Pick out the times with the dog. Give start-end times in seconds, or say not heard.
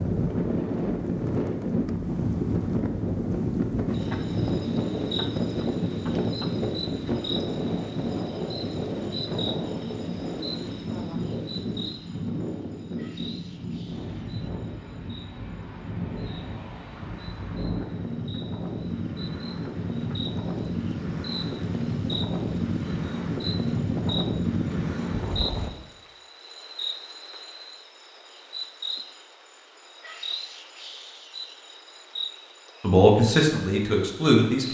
not heard.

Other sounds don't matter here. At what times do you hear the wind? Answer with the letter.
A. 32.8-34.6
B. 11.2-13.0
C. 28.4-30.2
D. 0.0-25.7
D.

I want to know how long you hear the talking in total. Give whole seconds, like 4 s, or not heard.
2 s.